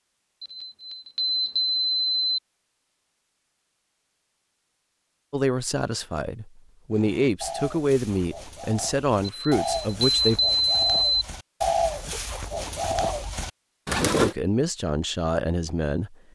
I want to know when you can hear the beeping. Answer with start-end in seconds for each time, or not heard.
0.4-2.4, 9.2-11.2.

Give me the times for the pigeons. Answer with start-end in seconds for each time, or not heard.
6.9-14.3.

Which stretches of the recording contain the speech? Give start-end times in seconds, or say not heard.
5.3-10.4, 14.2-16.1.